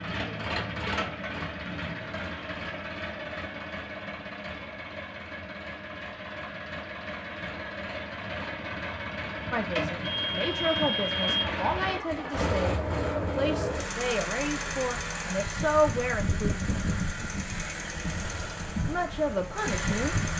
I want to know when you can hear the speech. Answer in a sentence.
The speech can be heard from 9.5 to 16.6 s and from 18.9 to 20.1 s.